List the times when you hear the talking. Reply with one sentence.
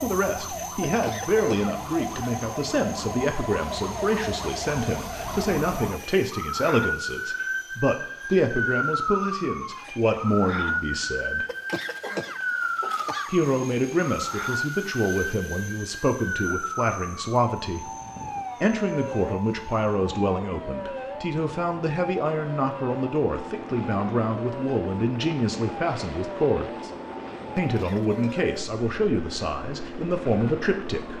The talking can be heard from 0.0 to 11.4 s, from 13.3 to 17.9 s, from 18.6 to 26.9 s and from 27.6 to 31.1 s.